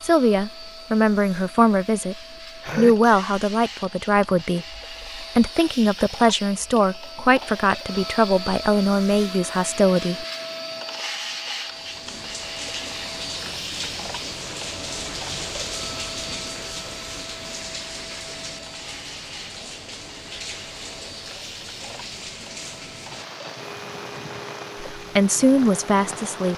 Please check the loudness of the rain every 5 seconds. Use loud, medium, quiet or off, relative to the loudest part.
off, off, loud, loud, loud, loud.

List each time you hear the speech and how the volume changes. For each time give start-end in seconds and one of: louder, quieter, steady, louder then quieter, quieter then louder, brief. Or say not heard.
0.0-2.1 brief
2.8-10.2 steady
24.9-26.5 brief.